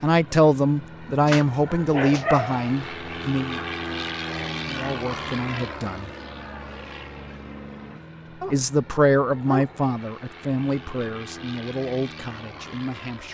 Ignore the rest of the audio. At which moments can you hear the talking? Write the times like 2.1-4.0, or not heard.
0.0-3.6, 4.7-6.1, 8.5-13.2.